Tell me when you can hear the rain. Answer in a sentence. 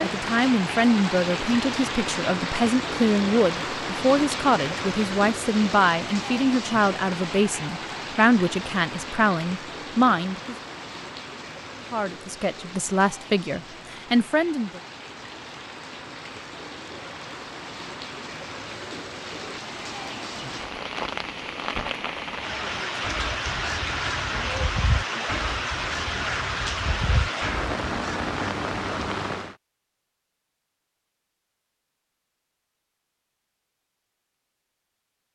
The rain can be heard from 0.0 to 29.6 s.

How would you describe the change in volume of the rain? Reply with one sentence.
The volume of the rain goes down, then up.